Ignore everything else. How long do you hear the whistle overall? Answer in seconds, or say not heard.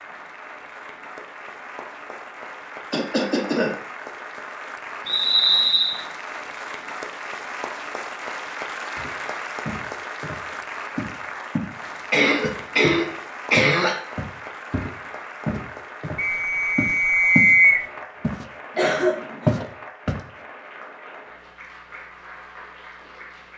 3 s.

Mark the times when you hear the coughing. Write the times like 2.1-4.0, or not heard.
2.9-3.8, 12.1-14.0, 18.8-19.6.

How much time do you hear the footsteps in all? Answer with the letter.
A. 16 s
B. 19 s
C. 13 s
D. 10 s
D.